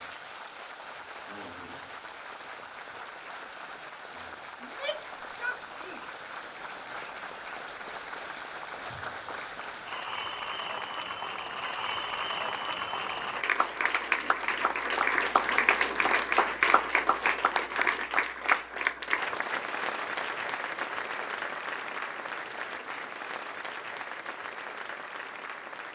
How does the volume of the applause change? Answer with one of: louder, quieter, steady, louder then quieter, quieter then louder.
louder then quieter.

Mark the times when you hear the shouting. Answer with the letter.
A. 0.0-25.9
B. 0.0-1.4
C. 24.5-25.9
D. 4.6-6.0
D.